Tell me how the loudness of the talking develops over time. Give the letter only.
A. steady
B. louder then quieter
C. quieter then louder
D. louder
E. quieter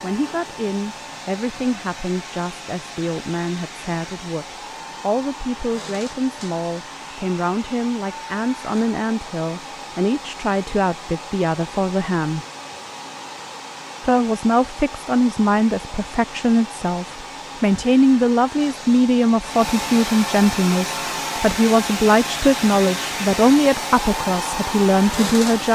D.